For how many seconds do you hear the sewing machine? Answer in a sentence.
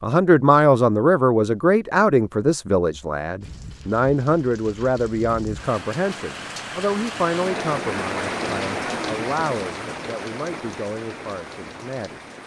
You can't hear the sewing machine here.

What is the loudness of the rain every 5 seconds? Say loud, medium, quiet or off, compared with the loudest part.
quiet, loud, medium.